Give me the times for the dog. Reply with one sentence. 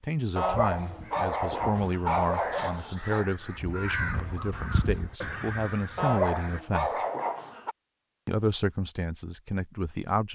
The dog can be heard from 0.3 to 3.2 s and from 6.0 to 7.8 s.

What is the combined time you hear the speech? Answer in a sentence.
You can hear the speech for 9 seconds altogether.